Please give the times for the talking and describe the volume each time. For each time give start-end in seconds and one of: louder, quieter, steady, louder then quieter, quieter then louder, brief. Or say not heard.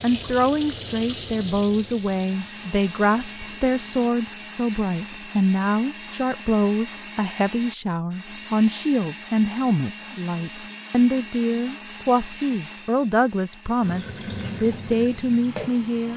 0.0-16.1 steady.